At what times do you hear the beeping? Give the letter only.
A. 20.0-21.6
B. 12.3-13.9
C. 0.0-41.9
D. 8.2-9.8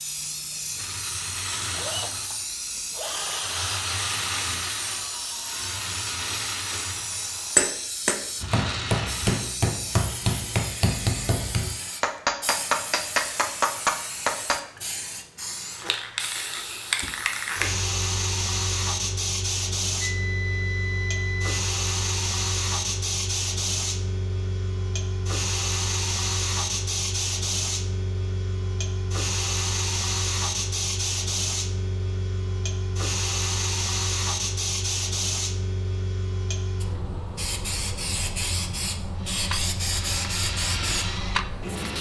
A.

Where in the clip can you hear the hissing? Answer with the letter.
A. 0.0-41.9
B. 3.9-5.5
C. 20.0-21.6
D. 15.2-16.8
A.